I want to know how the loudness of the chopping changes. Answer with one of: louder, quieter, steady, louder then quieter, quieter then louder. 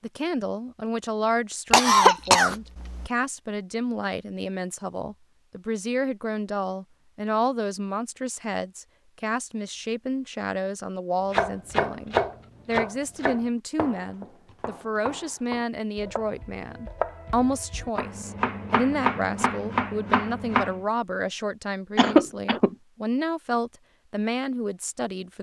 quieter then louder.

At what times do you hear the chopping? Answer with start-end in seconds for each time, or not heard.
11.3-20.8.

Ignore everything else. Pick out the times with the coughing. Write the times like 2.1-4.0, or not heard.
1.7-3.1, 21.9-22.8.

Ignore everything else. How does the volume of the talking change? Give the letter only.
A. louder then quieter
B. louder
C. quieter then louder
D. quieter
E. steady
E.